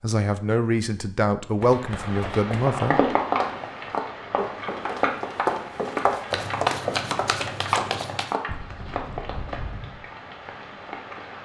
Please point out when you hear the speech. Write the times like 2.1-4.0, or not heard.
0.0-3.0.